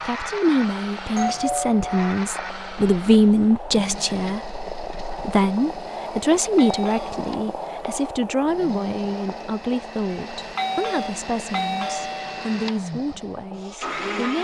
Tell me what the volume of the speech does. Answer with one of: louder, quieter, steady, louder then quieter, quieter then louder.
quieter.